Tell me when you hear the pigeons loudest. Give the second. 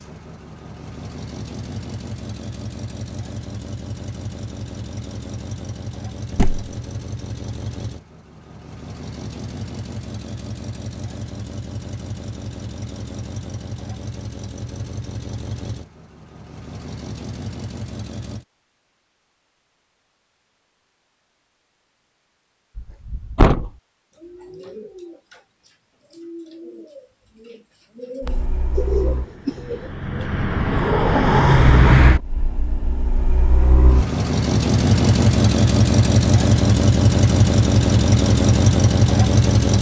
29 s.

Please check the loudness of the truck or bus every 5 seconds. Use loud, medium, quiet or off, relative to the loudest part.
quiet, quiet, quiet, quiet, off, quiet, loud, loud.